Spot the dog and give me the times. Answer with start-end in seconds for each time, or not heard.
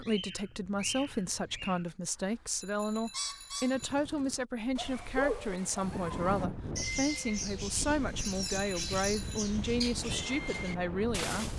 not heard.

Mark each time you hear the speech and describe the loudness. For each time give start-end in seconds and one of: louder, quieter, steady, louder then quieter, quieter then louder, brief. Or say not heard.
0.0-11.5 steady.